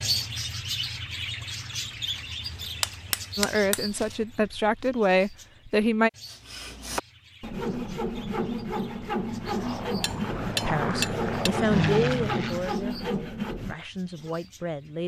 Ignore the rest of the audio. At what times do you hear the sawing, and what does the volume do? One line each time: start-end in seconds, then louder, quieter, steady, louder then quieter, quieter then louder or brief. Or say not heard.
6.2-14.3 steady.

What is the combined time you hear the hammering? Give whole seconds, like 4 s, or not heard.
3 s.